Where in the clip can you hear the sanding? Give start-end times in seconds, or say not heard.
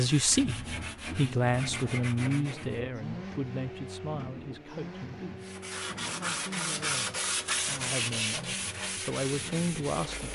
0.0-2.9, 5.4-10.3.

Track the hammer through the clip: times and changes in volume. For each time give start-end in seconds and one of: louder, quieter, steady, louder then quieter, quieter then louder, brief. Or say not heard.
not heard.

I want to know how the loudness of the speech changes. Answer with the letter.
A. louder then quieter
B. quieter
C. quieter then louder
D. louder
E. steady
C.